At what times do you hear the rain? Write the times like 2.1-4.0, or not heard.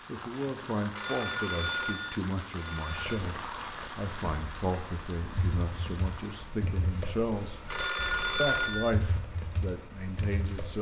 0.0-6.6.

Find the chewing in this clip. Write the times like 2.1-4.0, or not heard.
not heard.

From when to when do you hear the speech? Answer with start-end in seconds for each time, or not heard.
0.1-7.7, 8.3-10.7.